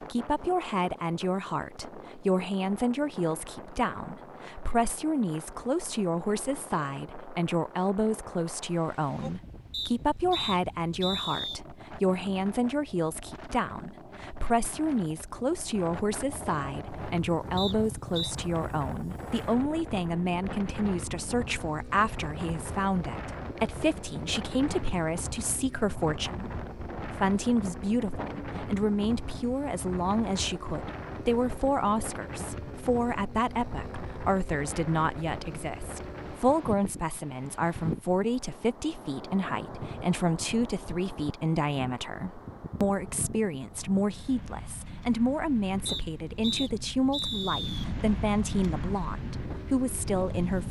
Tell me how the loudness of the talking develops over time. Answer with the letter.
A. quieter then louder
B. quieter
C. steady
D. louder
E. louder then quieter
C.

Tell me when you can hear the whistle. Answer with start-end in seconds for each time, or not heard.
9.7-11.6, 17.6-18.4, 45.9-47.9.